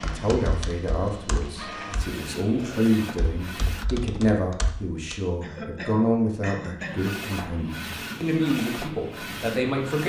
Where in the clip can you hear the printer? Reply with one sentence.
You can hear the printer from 0.0 to 3.9 s and from 6.8 to 10.0 s.